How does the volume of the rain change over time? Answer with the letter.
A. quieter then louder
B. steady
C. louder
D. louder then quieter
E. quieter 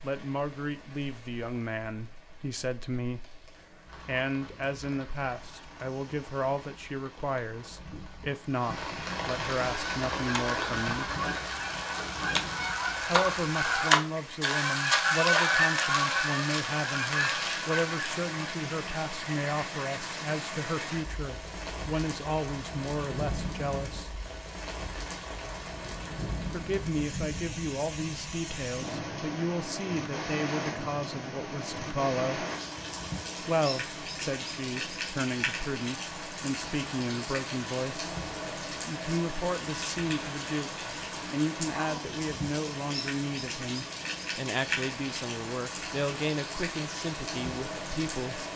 C.